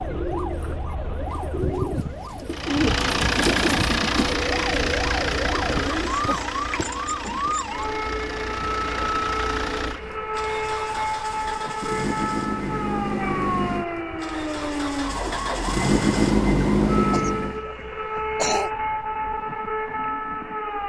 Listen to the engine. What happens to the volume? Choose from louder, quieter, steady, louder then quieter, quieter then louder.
quieter then louder.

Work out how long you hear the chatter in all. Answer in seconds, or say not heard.
not heard.